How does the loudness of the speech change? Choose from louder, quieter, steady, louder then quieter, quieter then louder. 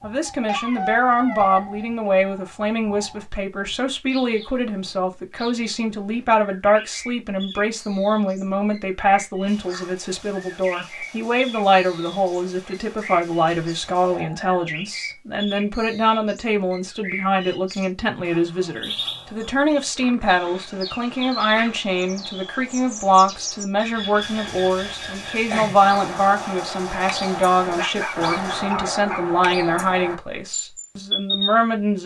steady.